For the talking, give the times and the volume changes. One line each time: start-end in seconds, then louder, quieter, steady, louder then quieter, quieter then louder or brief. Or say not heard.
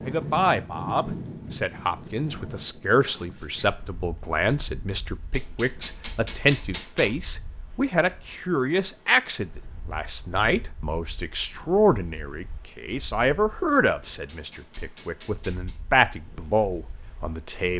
0.1-17.7 steady.